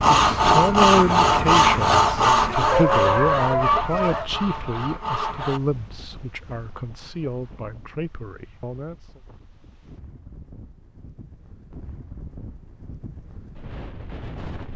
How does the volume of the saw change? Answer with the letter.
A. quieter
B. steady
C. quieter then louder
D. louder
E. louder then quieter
A.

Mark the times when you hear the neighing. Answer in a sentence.
You can't hear the neighing here.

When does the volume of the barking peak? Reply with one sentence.
The volume of the barking peaks at 3 seconds.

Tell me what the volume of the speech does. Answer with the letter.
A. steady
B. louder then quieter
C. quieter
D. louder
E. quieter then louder
C.